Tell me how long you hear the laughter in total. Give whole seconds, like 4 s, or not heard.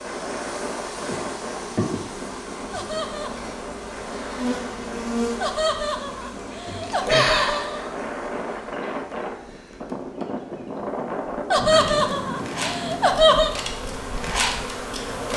5 s.